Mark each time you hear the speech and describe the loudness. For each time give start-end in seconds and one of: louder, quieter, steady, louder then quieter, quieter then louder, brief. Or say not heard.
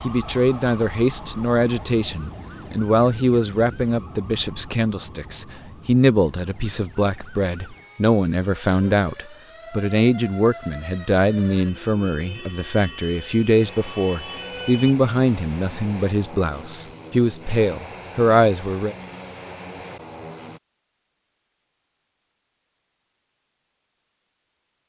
0.0-18.9 steady.